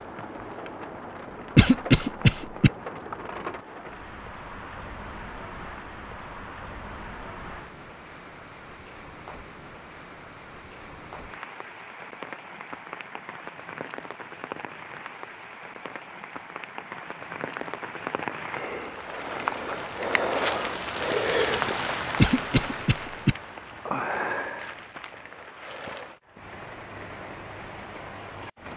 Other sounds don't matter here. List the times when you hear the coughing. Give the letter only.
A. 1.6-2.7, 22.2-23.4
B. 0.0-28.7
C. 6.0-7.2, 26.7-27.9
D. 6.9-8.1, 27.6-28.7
A.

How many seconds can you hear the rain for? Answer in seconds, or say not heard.
29 s.